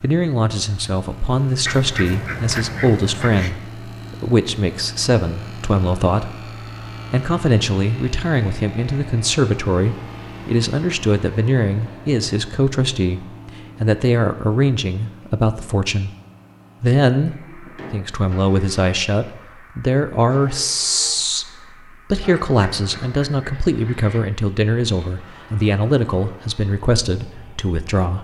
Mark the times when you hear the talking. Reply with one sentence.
You can hear the talking from 0.0 to 6.5 s, from 7.1 to 16.1 s, from 16.8 to 21.4 s and from 22.1 to 28.1 s.